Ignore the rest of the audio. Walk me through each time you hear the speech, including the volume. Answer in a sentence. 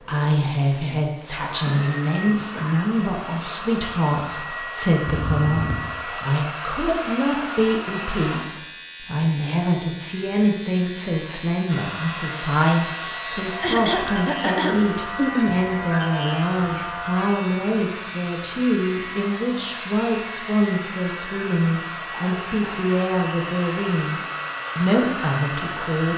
You can hear the speech from 0.1 to 26.1 s, at a steady volume.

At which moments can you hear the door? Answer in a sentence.
You can hear the door from 5.0 to 5.9 s.